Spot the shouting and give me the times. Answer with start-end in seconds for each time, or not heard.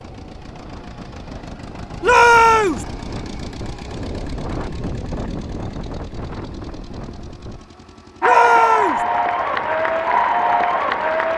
2.0-2.9, 8.2-9.1.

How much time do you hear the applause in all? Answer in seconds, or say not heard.
3 s.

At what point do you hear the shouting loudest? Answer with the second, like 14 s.
2 s.